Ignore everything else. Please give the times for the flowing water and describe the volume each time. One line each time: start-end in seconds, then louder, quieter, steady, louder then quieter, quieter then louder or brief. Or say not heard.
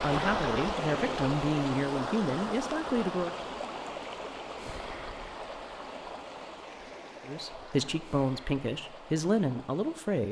0.0-10.2 quieter.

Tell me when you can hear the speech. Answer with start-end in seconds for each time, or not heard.
0.0-3.4, 7.2-10.2.